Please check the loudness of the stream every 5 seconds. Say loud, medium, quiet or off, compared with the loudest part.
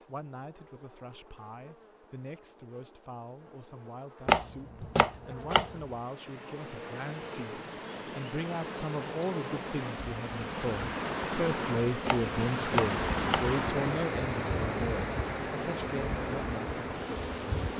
off, medium, loud, loud.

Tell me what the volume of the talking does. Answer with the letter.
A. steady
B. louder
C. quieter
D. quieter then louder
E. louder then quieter
B.